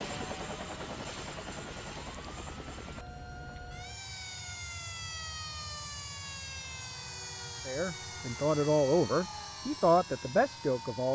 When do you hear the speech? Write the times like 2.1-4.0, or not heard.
7.7-11.1.